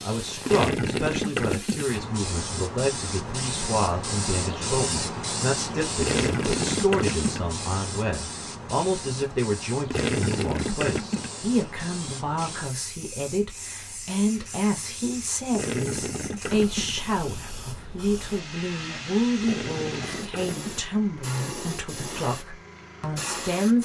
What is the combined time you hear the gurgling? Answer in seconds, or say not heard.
7 s.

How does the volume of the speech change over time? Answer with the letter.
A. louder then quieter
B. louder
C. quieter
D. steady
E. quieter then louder
D.